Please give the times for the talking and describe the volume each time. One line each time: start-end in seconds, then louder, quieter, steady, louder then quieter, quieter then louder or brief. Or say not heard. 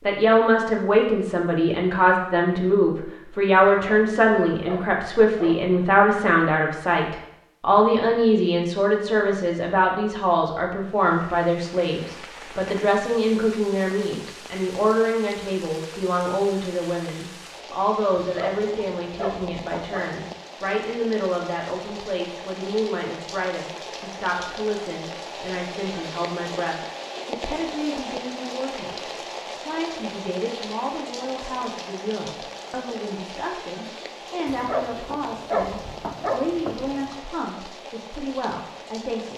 0.0-39.3 quieter.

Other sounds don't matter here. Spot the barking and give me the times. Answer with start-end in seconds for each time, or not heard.
3.6-5.8, 18.1-20.1, 34.5-37.1.